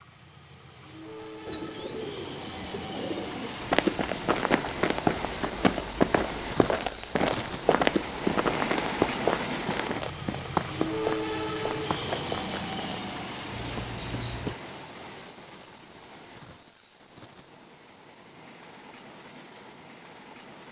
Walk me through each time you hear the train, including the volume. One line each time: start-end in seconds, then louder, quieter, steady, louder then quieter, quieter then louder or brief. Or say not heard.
0.0-20.6 louder then quieter.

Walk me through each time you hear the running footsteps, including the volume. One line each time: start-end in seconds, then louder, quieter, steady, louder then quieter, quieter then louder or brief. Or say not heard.
3.6-14.6 quieter.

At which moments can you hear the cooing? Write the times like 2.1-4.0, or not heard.
1.4-3.5.